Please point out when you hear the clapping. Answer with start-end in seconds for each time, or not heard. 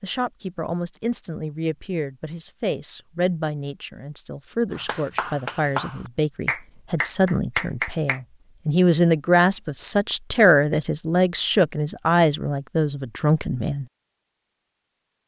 4.7-8.2.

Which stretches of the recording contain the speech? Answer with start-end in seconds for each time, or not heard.
0.0-13.8.